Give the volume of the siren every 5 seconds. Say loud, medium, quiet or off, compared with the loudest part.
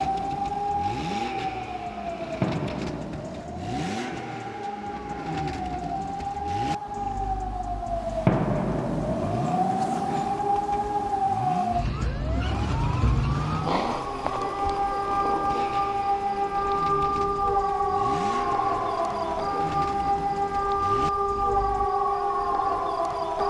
medium, loud, loud, loud, loud.